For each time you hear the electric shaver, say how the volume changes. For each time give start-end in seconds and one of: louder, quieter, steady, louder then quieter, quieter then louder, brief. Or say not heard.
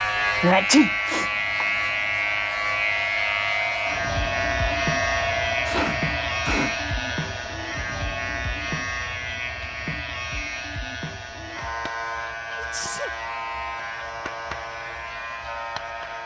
0.0-16.2 quieter.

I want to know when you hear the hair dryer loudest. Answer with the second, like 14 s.
5 s.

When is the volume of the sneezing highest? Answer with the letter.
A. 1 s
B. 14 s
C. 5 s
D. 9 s
A.